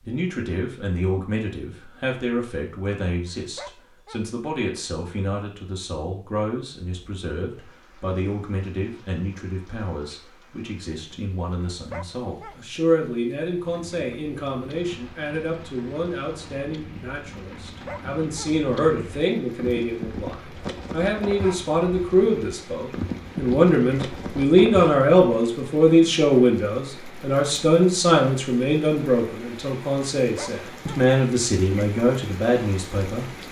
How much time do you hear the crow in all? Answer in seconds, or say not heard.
not heard.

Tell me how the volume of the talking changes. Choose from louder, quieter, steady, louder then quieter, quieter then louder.
louder.